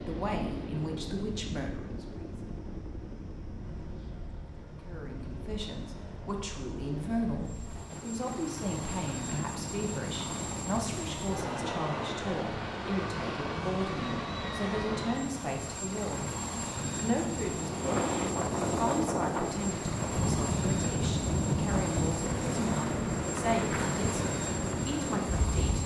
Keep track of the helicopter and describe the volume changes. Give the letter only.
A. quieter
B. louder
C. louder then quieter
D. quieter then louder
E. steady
B.